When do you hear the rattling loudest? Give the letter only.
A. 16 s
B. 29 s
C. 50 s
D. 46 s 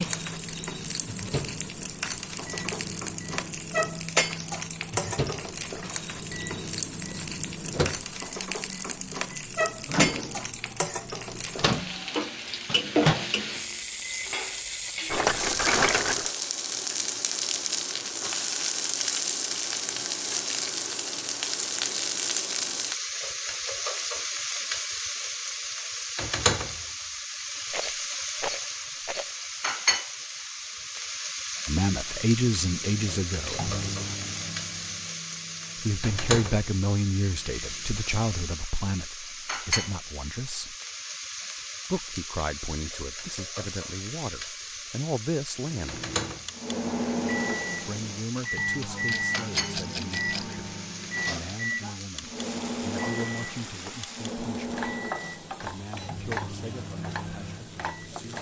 A.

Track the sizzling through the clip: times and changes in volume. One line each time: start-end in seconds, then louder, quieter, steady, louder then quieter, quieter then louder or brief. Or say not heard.
0.0-58.3 quieter.